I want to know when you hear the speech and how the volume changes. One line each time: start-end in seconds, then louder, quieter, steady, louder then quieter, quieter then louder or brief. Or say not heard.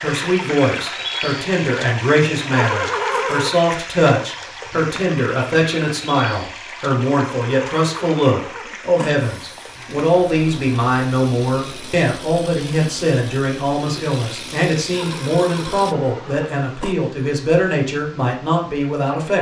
0.0-19.3 steady.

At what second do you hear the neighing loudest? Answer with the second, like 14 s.
3 s.